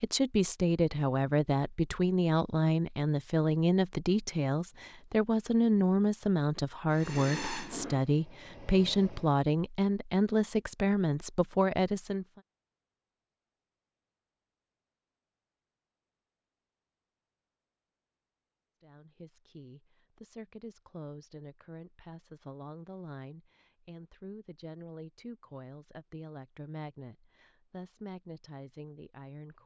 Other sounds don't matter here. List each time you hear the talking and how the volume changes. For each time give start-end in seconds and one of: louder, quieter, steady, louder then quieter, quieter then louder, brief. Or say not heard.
0.0-12.2 steady
18.8-29.6 steady.